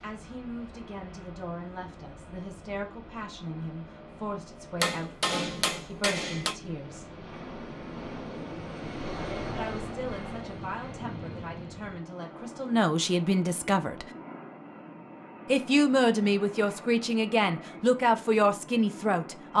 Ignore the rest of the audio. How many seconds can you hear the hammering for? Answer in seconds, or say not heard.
2 s.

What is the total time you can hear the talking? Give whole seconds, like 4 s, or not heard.
16 s.